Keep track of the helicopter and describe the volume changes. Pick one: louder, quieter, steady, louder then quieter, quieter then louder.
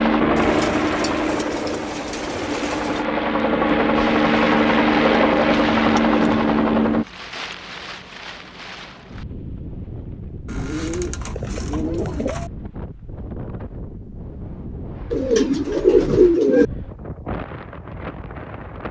quieter then louder.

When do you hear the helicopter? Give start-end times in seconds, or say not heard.
0.0-7.0.